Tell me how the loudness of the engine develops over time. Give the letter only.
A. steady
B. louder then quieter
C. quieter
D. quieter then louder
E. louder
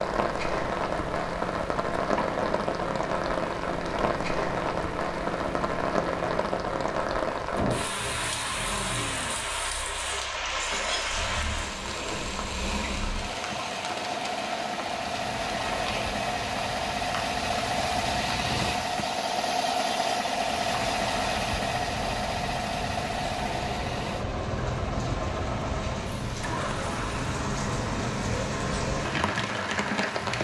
B.